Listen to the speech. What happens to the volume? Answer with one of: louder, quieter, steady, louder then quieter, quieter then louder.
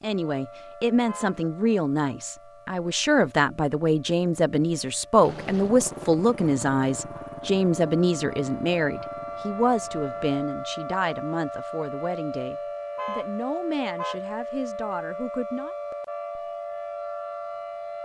quieter.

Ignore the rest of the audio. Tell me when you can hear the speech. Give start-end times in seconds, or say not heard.
0.0-15.8.